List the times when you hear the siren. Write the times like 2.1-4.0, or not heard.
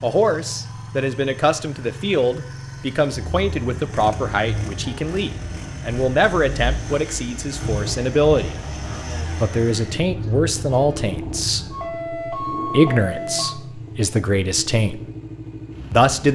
3.1-13.6.